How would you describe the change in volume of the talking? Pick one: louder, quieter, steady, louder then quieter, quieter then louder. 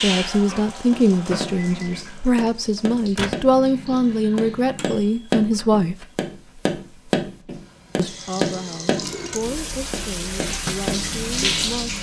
quieter.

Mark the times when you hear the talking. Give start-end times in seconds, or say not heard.
0.0-6.0, 8.0-11.9.